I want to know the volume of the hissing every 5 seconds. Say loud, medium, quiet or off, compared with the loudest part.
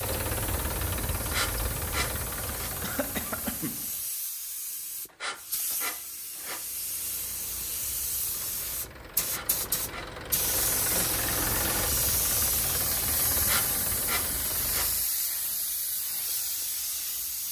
medium, medium, loud, loud.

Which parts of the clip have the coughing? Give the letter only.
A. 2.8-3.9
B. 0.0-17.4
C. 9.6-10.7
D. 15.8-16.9
A.